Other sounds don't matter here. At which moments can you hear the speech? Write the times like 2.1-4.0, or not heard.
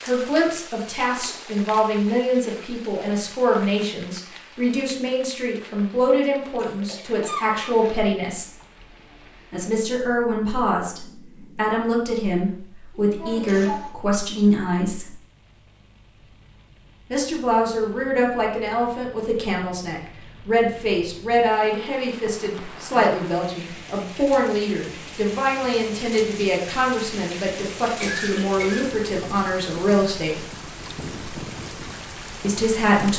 0.0-8.4, 9.5-15.2, 17.1-30.4, 32.4-33.1.